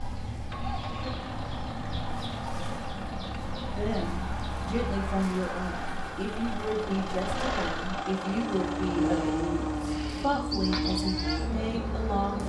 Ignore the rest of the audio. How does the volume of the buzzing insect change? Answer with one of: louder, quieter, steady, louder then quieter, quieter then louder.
louder.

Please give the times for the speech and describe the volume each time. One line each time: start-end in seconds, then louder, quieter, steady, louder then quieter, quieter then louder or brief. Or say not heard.
3.6-12.4 steady.